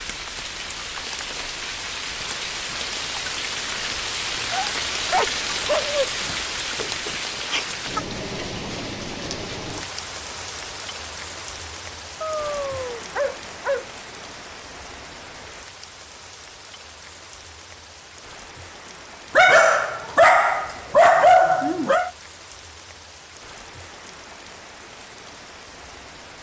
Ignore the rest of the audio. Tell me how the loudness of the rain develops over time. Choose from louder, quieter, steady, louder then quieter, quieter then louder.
quieter.